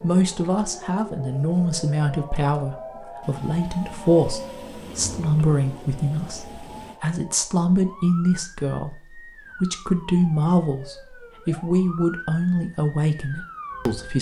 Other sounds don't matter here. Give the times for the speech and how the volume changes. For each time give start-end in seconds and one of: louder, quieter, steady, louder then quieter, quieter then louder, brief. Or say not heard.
0.0-14.1 steady.